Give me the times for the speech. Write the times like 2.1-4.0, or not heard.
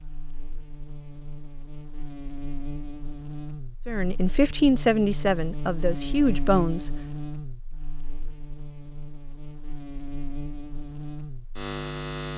3.9-6.9.